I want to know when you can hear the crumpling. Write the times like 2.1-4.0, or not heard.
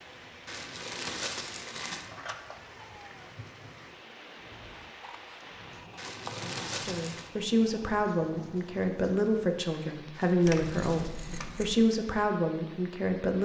0.5-2.1, 6.0-7.3, 10.1-11.3.